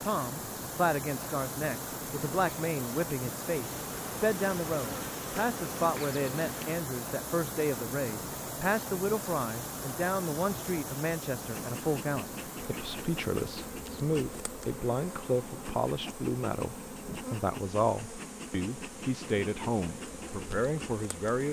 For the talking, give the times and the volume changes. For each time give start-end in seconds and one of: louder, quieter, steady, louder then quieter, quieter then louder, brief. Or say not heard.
0.0-21.4 steady.